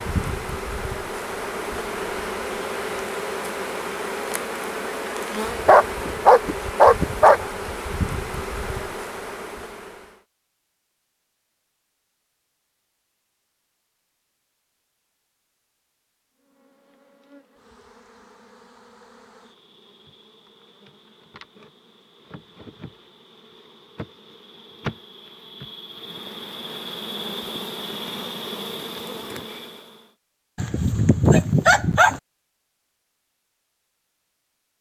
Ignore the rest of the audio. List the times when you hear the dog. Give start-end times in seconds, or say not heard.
5.7-7.5, 30.6-32.2.